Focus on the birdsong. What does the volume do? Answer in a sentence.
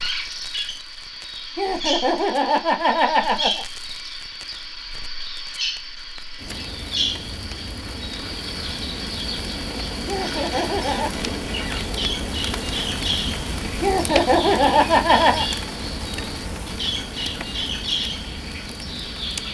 The loudness of the birdsong stays about the same.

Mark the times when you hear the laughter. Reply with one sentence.
The laughter can be heard from 1.6 to 3.6 s, from 10.1 to 11.2 s and from 13.8 to 15.4 s.